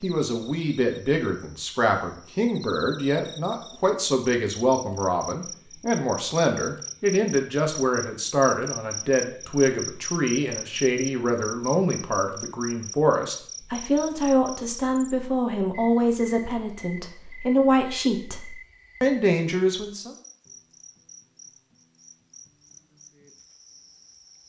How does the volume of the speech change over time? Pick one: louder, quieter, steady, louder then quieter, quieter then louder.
steady.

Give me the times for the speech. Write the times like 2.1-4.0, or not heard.
0.0-20.1.